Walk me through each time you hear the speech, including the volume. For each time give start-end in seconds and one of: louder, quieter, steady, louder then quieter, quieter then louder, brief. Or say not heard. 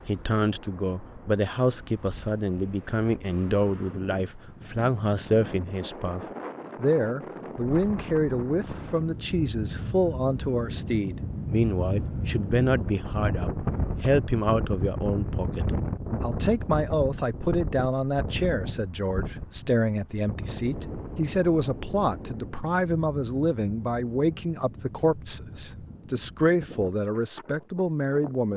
0.1-28.5 steady.